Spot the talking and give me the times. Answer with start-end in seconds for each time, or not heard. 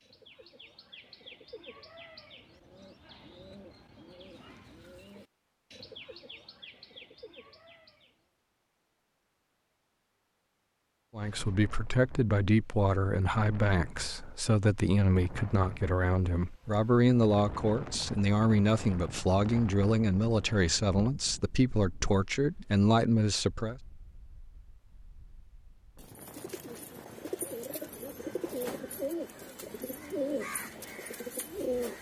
11.2-23.8.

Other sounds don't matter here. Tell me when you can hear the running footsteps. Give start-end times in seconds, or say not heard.
not heard.